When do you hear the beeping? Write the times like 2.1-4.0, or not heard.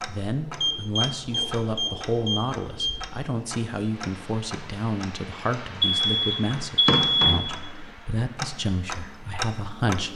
0.6-3.1, 5.8-7.4.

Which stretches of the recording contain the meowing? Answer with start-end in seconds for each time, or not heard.
not heard.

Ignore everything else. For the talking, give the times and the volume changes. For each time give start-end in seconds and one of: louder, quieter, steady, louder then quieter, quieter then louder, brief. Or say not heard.
0.1-10.1 steady.